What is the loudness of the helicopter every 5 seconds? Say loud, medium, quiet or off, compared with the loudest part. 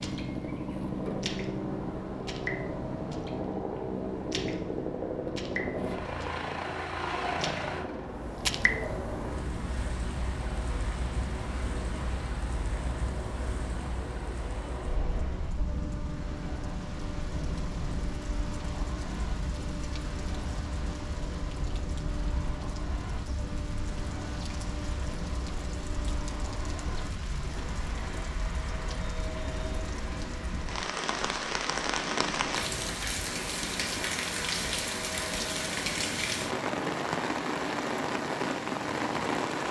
loud, loud, medium, medium, medium, medium, medium, medium.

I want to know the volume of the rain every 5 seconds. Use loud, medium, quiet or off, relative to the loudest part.
medium, medium, medium, medium, medium, medium, loud, loud.